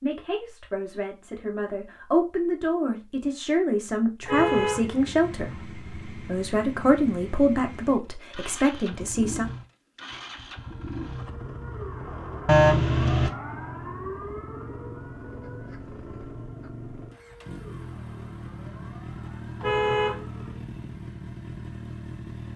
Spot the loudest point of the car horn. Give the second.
13 s.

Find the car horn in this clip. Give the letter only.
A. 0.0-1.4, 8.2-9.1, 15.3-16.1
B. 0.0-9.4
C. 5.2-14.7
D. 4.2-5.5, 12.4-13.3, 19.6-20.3
D.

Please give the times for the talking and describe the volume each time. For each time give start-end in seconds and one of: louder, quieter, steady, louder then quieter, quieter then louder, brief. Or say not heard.
0.0-9.4 louder.